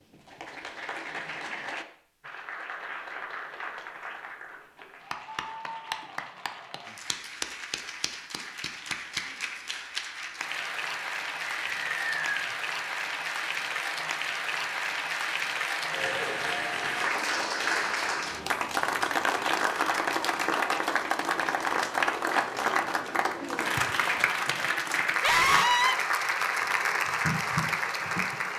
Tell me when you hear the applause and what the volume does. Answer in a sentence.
You can hear the applause from 0.0 to 28.5 s, getting louder.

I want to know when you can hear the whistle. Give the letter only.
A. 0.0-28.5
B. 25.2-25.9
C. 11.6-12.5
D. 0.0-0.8
C.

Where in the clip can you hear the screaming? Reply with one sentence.
You can hear the screaming from 25.2 to 25.9 s.